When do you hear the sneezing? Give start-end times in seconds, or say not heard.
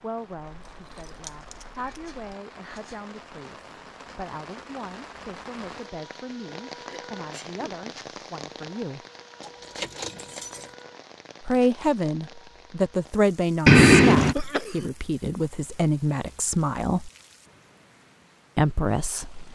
1.8-3.0, 6.7-7.8, 14.3-14.9.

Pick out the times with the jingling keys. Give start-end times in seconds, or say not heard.
0.5-2.4, 9.4-10.7, 13.7-14.3.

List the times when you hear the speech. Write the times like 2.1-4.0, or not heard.
0.0-9.1, 11.4-17.1, 18.6-19.4.